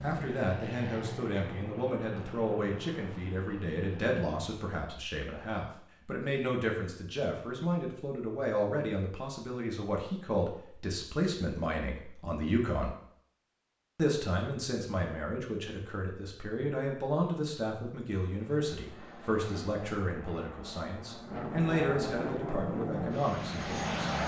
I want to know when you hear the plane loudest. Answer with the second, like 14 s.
24 s.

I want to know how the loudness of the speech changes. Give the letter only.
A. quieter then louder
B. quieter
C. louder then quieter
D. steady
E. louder
D.